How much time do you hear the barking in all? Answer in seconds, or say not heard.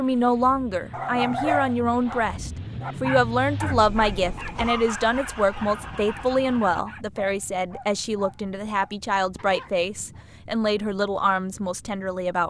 9 s.